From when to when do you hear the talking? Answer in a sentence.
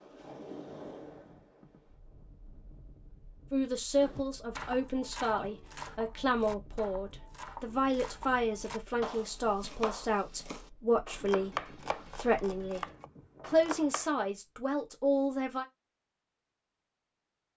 You can hear the talking from 3.5 to 12.8 s and from 13.4 to 15.7 s.